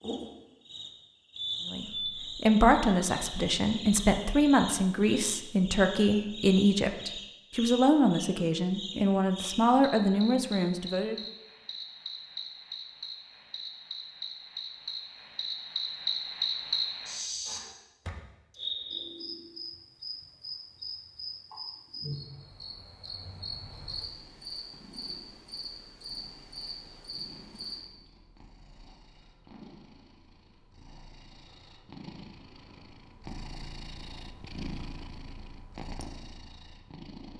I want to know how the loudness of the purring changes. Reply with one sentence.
The volume of the purring goes up.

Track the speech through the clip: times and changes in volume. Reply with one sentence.
You can hear the speech from 1.6 to 11.2 s, at a steady volume.